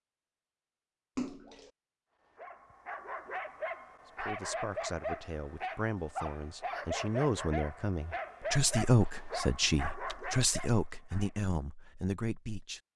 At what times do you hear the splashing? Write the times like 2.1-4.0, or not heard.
1.1-1.7, 10.1-10.7.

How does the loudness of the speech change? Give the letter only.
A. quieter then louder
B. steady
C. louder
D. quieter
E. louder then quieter
E.